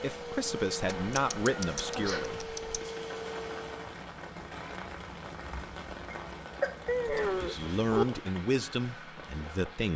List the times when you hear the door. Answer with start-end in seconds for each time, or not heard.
not heard.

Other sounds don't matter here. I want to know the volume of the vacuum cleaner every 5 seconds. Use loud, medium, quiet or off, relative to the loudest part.
loud, off.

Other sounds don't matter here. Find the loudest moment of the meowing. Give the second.
8 s.